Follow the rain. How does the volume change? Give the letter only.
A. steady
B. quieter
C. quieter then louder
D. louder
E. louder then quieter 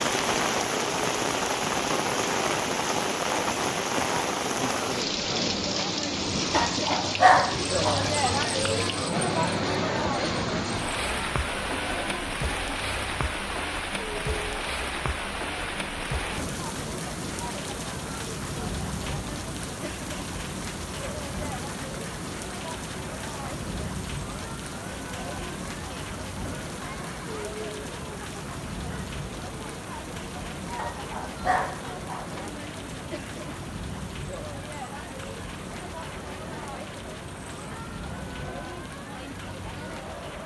B.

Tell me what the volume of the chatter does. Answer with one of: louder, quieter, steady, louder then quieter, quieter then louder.
quieter.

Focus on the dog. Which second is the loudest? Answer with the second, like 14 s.
7 s.